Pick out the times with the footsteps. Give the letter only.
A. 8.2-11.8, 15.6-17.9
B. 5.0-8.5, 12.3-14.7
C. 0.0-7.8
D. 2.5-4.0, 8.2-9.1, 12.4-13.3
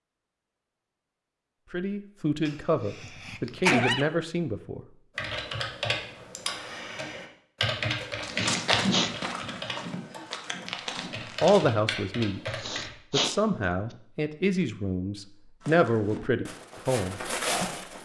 A.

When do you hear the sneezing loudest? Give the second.
4 s.